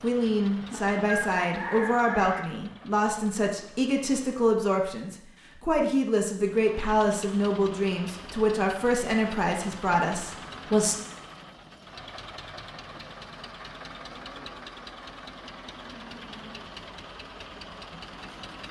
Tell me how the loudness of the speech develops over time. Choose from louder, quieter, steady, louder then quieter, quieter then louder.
steady.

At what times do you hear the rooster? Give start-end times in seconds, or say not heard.
0.6-2.4.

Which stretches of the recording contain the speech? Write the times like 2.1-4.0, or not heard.
0.0-10.9.